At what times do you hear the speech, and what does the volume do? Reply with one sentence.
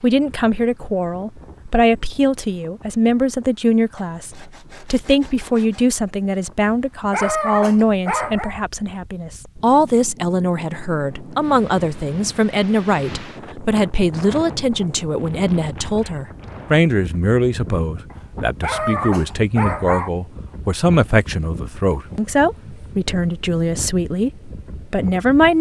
You can hear the speech from 0.0 to 25.5 s, at a steady volume.